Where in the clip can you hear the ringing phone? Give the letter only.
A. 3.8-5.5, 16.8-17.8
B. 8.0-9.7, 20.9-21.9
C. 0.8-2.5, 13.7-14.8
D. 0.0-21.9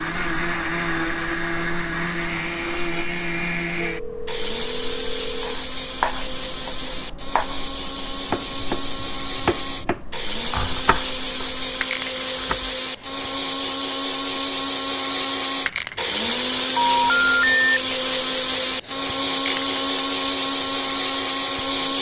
A.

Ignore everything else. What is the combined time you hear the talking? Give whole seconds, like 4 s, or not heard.
not heard.